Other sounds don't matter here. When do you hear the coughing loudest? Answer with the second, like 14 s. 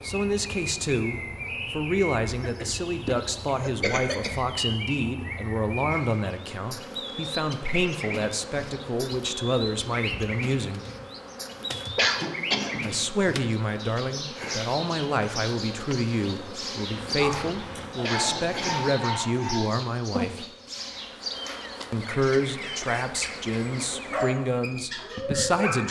12 s.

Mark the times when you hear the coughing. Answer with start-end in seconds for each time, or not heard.
2.4-4.3, 11.9-12.8, 18.0-18.9.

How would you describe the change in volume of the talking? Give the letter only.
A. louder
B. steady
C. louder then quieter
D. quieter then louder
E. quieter
B.